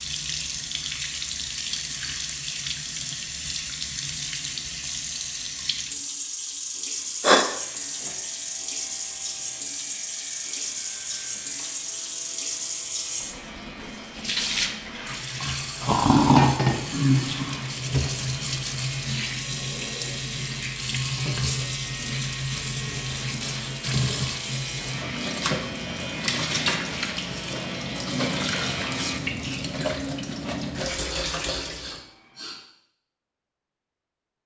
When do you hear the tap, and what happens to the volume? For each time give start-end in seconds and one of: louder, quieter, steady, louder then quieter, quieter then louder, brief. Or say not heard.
0.0-32.0 steady.